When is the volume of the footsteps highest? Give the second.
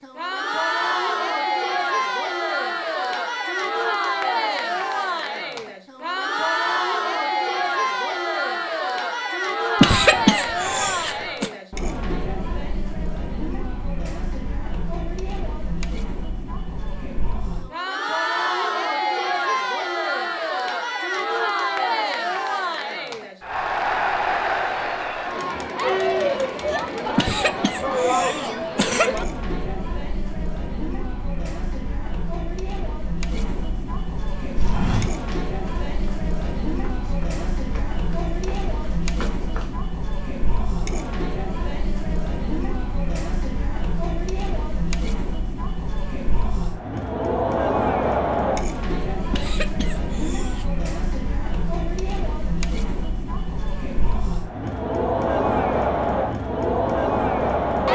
35 s.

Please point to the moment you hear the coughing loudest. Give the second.
10 s.